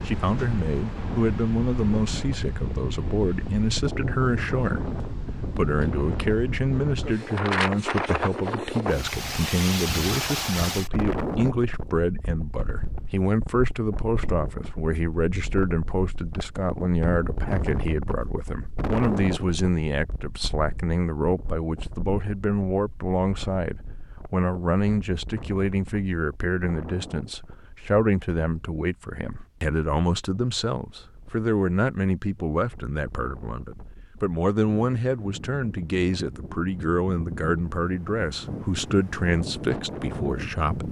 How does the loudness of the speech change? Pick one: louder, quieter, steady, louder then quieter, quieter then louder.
steady.